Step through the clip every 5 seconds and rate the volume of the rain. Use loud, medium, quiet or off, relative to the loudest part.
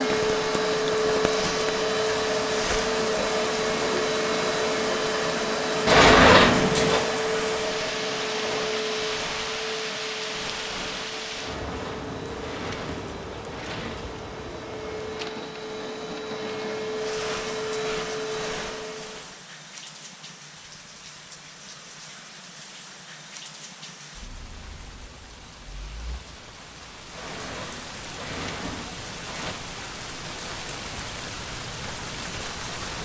loud, loud, loud, medium, medium, medium, loud.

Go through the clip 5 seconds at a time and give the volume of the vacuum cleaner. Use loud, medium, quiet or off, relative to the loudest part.
loud, loud, quiet, medium, off, off, off.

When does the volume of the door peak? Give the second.
6 s.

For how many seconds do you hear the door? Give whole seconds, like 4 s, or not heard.
6 s.